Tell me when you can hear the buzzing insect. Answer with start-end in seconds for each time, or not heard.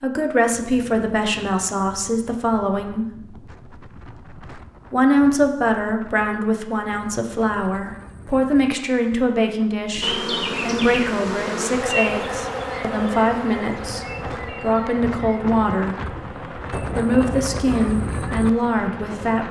10.0-19.4.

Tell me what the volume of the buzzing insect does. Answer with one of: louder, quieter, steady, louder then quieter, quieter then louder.
quieter.